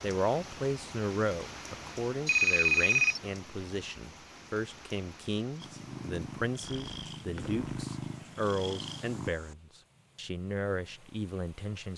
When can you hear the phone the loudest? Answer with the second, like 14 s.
3 s.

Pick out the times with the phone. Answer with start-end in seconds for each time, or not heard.
2.2-3.2, 6.6-8.0.